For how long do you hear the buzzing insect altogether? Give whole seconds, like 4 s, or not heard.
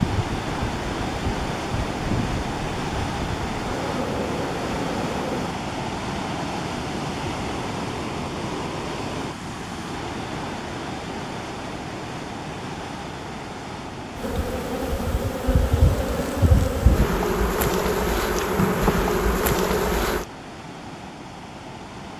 12 s.